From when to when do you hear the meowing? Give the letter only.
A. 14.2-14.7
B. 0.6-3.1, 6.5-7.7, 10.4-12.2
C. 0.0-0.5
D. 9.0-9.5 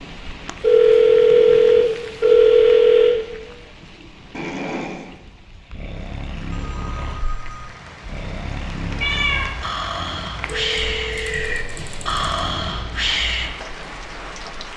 D.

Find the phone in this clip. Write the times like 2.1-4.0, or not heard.
0.6-3.1, 6.5-7.7, 10.4-12.2.